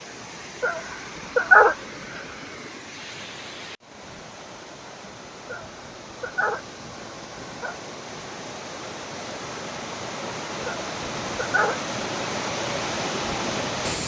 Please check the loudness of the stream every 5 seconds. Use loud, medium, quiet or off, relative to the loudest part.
medium, medium, loud.